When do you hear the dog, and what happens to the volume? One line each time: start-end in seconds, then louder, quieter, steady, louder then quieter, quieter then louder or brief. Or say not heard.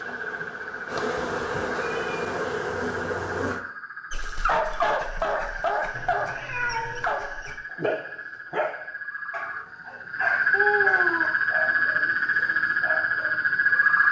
4.1-13.8 quieter.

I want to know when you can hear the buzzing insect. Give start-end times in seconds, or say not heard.
0.0-3.6.